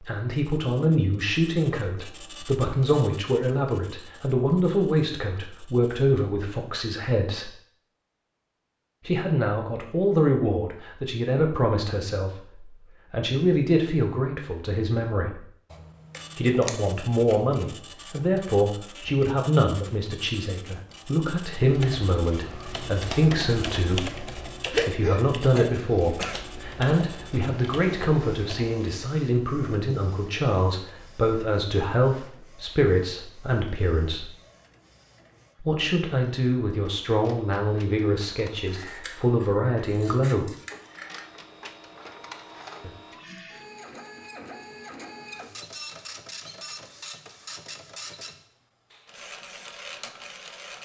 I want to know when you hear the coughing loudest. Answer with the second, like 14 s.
25 s.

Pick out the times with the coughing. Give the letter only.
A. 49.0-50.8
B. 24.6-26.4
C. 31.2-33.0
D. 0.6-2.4
B.